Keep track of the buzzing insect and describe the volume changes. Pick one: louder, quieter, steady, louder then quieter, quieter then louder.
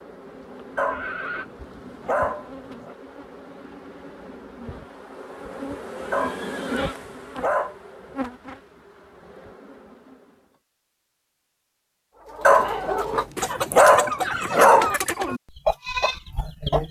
louder then quieter.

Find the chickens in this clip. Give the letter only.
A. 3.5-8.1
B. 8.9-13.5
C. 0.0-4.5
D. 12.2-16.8
D.